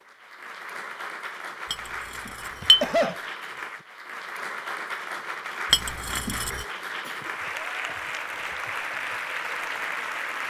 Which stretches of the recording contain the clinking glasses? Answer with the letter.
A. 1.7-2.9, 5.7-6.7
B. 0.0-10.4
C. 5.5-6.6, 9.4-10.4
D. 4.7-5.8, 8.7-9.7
A.